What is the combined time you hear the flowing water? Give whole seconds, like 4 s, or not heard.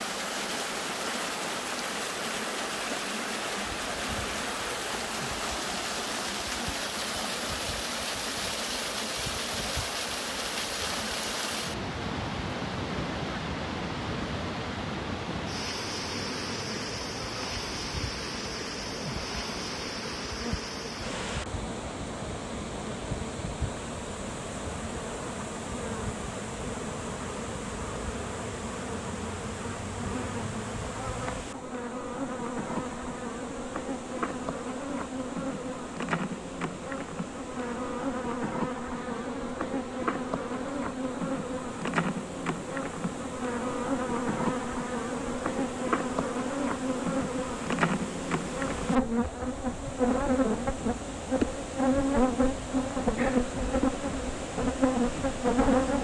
56 s.